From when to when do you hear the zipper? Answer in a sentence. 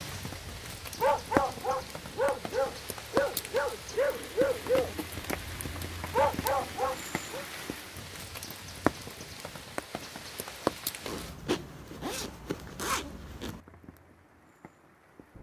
The zipper can be heard from 11.1 to 13.6 s.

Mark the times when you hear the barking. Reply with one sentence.
The barking can be heard from 0.3 to 7.5 s.